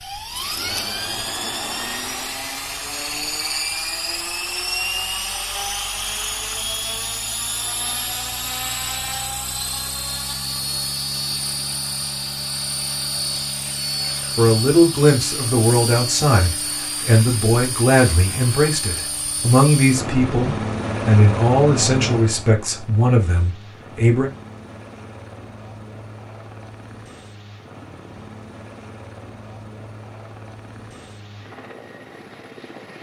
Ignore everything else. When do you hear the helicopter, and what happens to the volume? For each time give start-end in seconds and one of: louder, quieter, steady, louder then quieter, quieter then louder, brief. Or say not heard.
0.0-32.9 quieter.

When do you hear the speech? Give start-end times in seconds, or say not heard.
14.3-24.3.